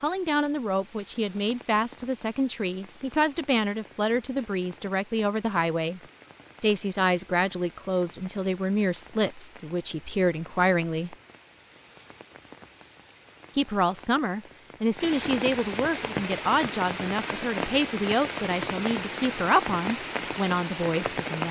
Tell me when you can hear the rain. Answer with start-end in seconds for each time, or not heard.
0.0-21.4.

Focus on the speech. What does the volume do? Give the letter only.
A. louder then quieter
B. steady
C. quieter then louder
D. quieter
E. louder
B.